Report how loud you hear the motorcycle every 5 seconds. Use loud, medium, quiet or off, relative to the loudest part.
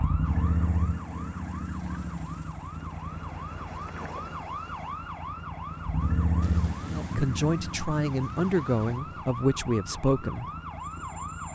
loud, loud, medium.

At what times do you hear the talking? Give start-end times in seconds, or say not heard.
6.9-10.4.